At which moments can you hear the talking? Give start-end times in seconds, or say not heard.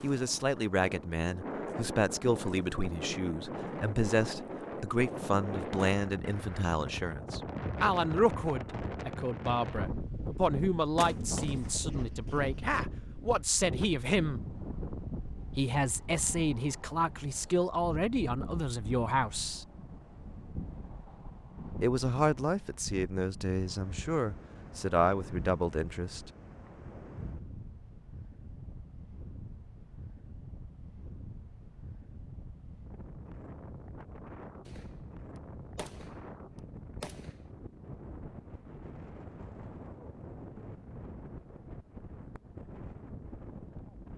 0.0-14.4, 15.6-19.6, 21.8-26.3.